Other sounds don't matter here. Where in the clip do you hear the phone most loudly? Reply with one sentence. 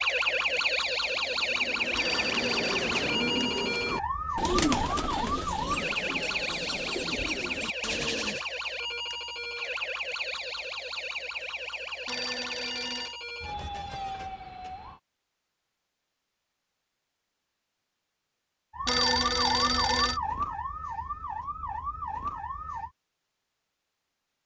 The loudest moment of the phone is at 19 seconds.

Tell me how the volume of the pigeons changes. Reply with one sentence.
The volume of the pigeons goes up, then down.